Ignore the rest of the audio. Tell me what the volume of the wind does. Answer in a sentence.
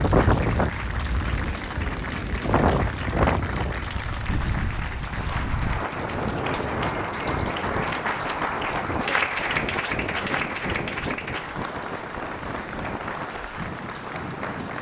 The volume of the wind goes down.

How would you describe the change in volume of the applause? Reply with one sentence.
The volume of the applause goes up, then down.